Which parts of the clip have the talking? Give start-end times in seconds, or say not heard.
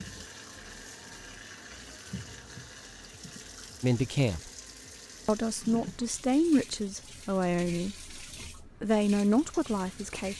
3.8-4.5, 5.2-10.3.